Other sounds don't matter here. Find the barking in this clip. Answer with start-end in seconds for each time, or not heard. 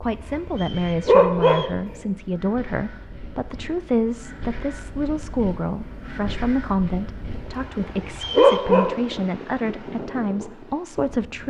0.0-1.9, 7.3-9.1.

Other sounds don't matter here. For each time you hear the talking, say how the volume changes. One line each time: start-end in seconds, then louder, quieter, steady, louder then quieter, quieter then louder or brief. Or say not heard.
0.0-11.4 steady.